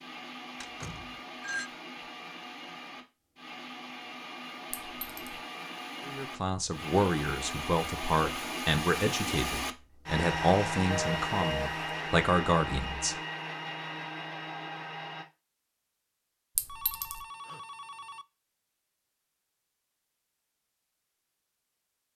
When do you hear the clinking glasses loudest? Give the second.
17 s.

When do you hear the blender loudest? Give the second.
11 s.